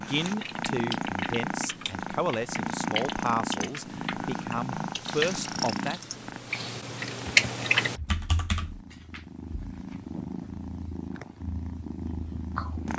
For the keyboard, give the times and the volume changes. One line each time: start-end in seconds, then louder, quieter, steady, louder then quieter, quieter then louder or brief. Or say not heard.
0.2-8.8 louder.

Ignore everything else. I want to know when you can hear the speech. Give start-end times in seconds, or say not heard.
0.0-6.0.